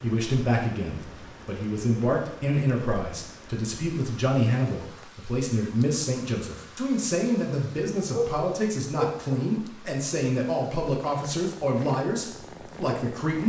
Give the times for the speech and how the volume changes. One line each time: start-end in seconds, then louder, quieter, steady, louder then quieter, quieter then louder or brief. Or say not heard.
0.0-13.4 steady.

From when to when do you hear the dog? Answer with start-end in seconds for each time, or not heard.
8.1-9.4.